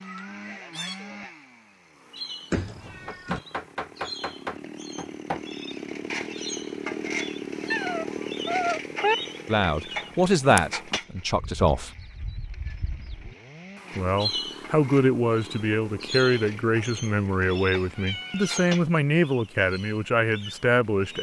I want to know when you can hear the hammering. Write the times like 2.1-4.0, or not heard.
3.0-5.5.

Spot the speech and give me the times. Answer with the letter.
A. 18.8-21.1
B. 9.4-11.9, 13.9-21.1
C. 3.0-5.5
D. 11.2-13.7
B.